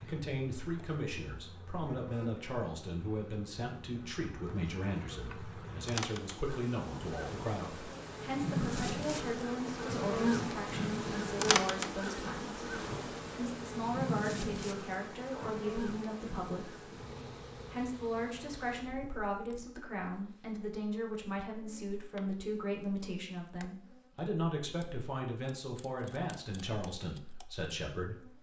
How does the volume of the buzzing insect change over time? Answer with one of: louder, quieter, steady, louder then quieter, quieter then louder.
louder then quieter.